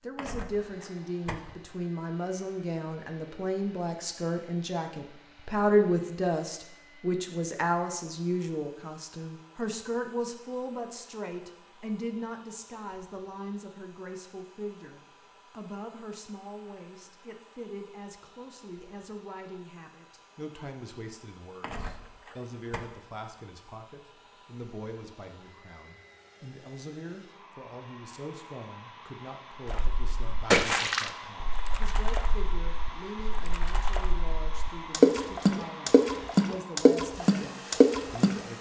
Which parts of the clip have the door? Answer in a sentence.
You can hear the door from 0.1 to 1.6 s and from 21.6 to 22.9 s.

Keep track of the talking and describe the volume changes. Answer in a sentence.
The loudness of the talking goes down.